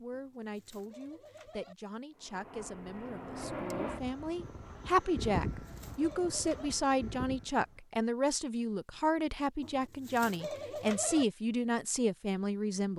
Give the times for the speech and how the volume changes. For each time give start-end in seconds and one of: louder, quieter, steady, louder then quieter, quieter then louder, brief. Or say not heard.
0.0-12.9 louder.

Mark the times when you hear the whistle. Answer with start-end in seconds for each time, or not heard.
not heard.